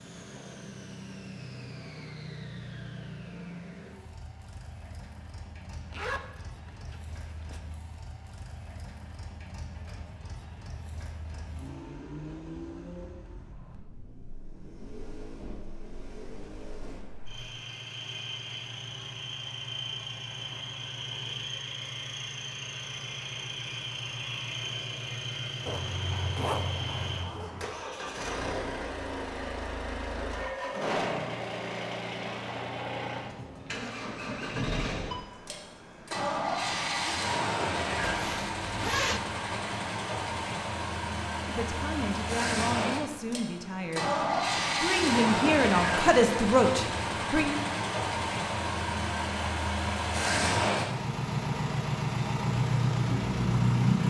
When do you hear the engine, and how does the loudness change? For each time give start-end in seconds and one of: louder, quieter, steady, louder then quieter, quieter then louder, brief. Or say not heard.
0.0-54.0 louder.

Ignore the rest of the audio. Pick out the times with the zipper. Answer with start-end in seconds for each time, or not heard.
5.7-7.6, 25.6-27.6, 38.0-39.2.